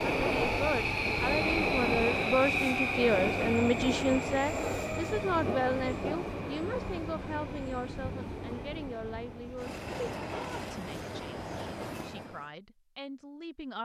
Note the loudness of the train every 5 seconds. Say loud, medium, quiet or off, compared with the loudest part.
loud, medium, medium.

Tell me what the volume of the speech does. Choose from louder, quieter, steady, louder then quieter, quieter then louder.
quieter.